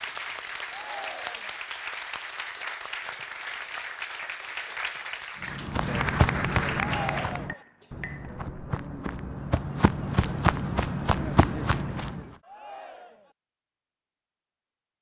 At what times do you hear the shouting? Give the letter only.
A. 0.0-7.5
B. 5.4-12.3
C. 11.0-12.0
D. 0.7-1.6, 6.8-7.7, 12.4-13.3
D.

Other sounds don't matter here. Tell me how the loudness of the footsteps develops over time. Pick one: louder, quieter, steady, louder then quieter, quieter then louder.
quieter then louder.